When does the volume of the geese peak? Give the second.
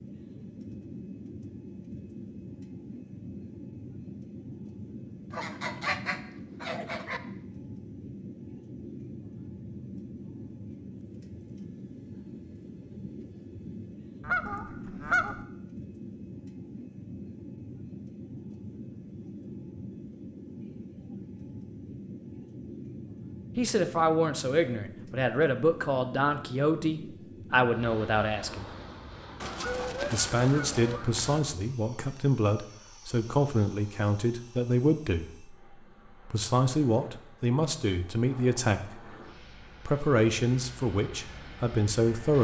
15 s.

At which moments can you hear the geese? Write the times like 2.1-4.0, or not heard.
5.3-7.2, 14.2-15.4, 29.4-31.4.